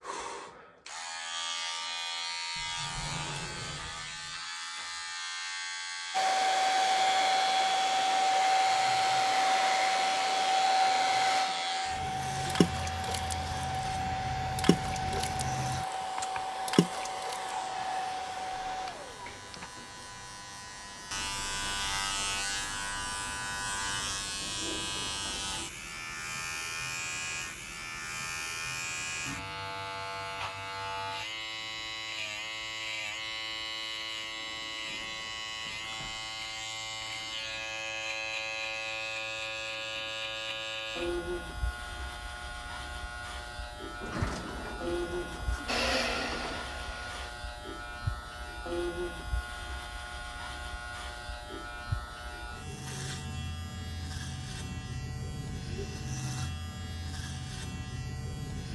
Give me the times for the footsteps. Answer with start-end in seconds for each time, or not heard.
not heard.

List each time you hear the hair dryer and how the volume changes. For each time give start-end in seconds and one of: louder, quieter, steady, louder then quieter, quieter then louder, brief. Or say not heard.
6.1-19.7 quieter
45.6-47.3 brief.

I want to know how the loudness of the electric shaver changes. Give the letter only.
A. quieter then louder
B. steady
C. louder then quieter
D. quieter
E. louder
B.